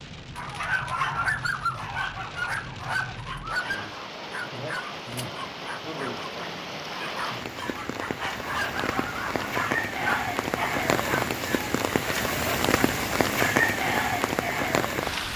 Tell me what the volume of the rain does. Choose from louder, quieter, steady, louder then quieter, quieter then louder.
louder.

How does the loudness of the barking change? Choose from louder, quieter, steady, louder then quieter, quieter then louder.
quieter then louder.